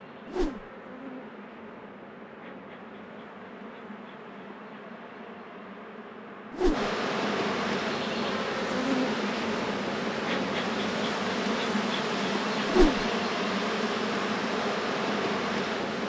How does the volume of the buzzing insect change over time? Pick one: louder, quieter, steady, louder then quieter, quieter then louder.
louder.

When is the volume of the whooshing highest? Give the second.
13 s.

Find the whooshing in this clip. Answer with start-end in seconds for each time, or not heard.
0.2-0.7, 6.5-6.9, 12.7-13.1.